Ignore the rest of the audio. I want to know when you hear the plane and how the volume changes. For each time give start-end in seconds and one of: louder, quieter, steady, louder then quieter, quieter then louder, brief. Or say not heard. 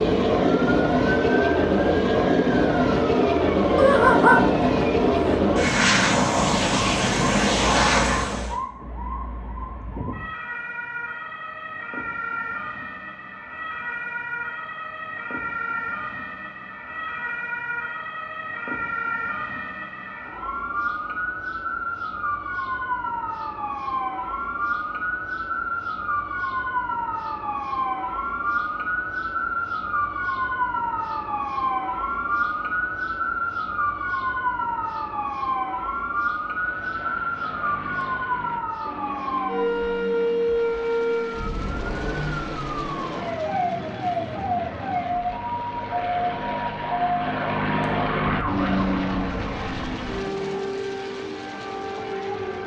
0.0-8.6 steady
36.5-52.6 louder then quieter.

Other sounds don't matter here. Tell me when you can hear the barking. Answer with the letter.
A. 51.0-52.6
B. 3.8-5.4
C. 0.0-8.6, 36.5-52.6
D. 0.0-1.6
B.